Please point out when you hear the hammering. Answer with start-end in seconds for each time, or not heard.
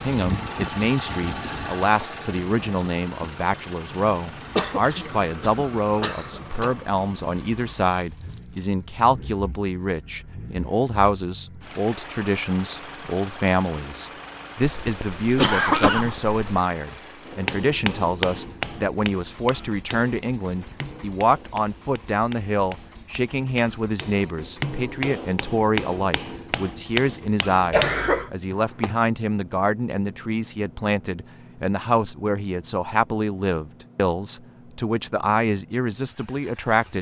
17.2-28.9.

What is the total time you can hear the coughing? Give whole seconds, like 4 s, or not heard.
5 s.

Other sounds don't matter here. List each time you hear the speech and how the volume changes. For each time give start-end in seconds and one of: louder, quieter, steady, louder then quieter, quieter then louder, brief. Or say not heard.
0.0-36.9 steady.